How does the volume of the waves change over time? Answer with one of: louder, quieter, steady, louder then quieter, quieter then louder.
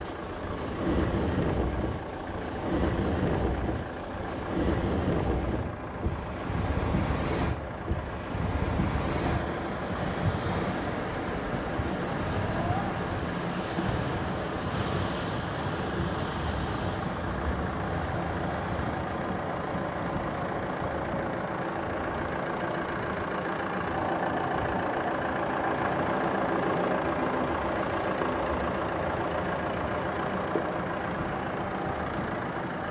quieter.